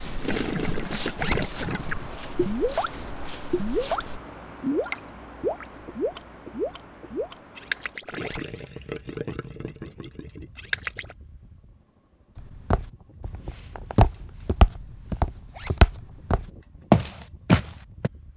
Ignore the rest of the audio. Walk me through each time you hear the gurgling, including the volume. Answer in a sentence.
The gurgling can be heard briefly from 0.2 to 2.9 s; and from 3.5 to 11.2 s, getting quieter.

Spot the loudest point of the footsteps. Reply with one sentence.
The volume of the footsteps peaks at 17 seconds.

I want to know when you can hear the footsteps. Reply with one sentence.
You can hear the footsteps from 0.0 to 4.2 s and from 12.3 to 18.1 s.